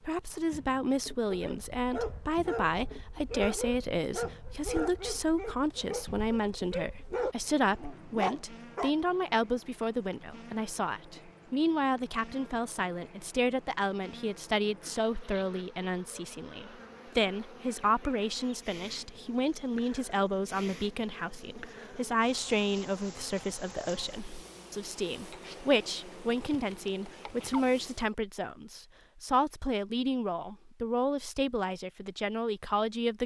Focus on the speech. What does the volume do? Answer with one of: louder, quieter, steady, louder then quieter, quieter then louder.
steady.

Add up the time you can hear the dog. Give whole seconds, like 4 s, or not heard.
8 s.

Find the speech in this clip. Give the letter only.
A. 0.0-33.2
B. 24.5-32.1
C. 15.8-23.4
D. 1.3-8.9
A.